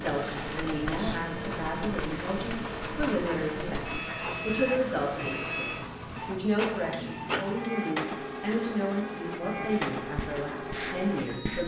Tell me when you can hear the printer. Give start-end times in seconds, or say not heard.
0.0-11.6.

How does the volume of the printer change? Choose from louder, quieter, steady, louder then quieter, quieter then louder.
steady.